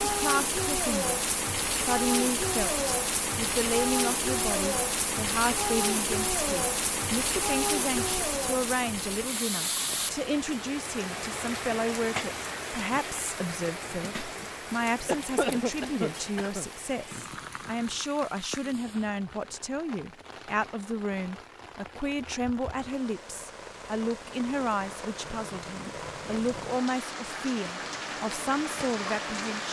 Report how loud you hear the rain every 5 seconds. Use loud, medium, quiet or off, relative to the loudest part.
loud, loud, medium, quiet, quiet, medium.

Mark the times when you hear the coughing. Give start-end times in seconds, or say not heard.
15.1-16.7.